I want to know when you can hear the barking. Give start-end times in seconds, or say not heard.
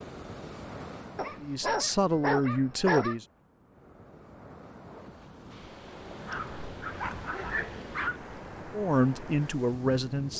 1.1-3.1, 6.2-8.2.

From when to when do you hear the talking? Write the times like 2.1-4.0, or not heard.
1.4-3.2, 8.7-10.3.